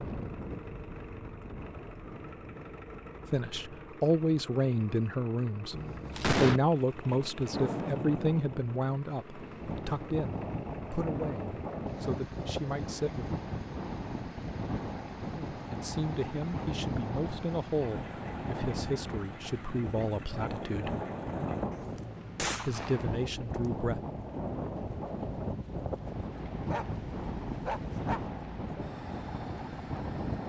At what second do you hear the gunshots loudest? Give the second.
6 s.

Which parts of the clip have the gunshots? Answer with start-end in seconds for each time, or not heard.
5.7-6.6, 22.4-23.2.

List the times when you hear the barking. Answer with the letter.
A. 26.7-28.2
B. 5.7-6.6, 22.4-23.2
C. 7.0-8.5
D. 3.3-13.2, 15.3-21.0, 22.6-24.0
A.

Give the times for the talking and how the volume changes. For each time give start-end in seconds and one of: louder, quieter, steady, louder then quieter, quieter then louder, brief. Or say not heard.
3.3-13.2 quieter
15.3-21.0 steady
22.6-24.0 brief.